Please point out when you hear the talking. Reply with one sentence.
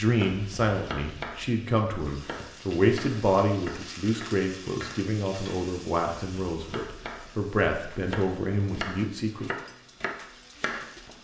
The talking can be heard from 0.0 to 9.5 s.